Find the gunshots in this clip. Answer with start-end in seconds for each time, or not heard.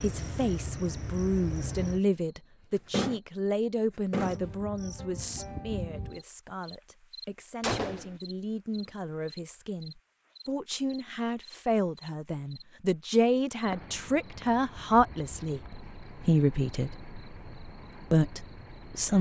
7.6-8.2.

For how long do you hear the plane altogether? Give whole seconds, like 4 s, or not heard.
not heard.